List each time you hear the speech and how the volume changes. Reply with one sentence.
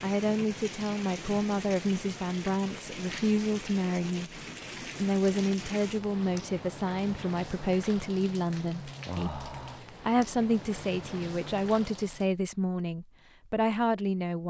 You can hear the speech from 0.0 to 14.4 s, at a steady volume.